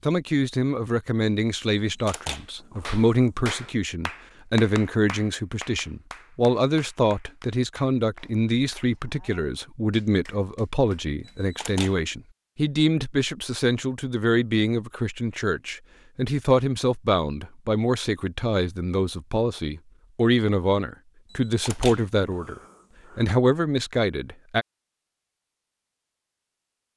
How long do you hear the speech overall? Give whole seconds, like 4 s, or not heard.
25 s.